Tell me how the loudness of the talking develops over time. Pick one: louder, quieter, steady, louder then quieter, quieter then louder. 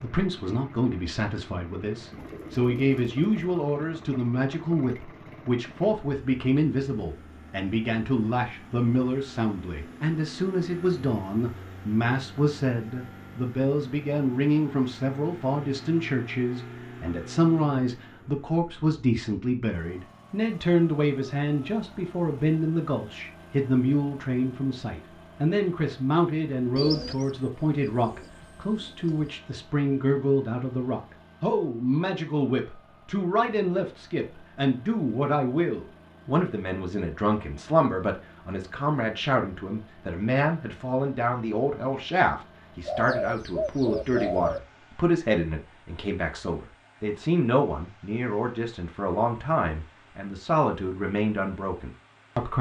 steady.